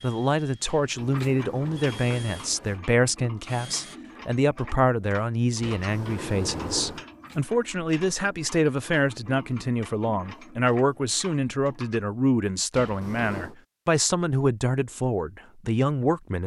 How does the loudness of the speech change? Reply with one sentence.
The volume of the speech stays about the same.